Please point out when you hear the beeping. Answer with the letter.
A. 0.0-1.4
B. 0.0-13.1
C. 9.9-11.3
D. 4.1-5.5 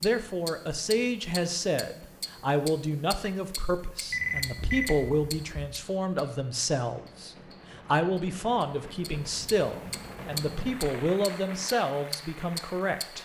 D.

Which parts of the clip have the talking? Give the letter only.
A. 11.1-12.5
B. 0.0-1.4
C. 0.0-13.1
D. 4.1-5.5
C.